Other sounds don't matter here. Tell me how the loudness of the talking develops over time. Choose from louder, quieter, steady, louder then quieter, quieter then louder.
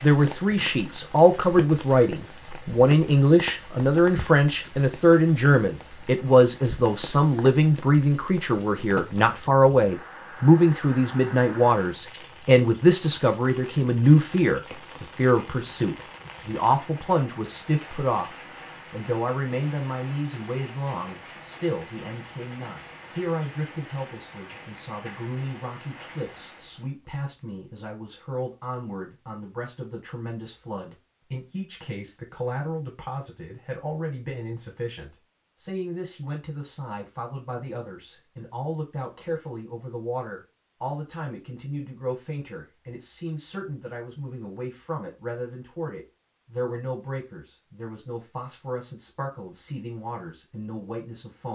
quieter.